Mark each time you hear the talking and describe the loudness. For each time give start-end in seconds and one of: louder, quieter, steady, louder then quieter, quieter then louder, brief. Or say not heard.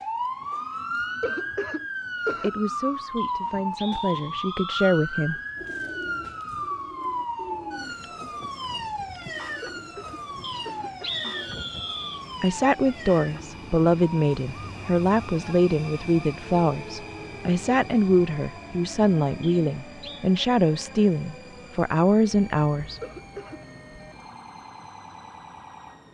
2.4-5.3 brief
12.4-23.0 steady.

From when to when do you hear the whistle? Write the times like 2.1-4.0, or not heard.
3.1-4.7, 10.4-12.2, 19.4-20.3.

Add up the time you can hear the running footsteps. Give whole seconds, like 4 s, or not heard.
not heard.